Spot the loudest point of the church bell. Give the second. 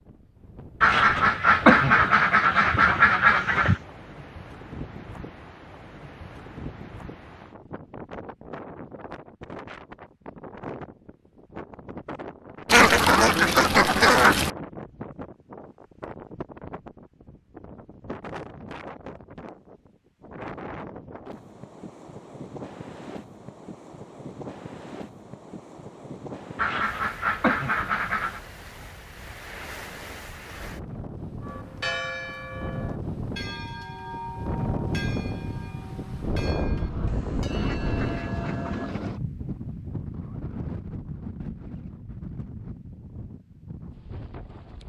32 s.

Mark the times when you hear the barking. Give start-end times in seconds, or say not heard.
not heard.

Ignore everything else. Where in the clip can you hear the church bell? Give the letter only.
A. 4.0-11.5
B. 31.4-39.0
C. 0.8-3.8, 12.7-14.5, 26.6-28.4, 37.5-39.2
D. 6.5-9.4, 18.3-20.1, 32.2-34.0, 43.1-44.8
B.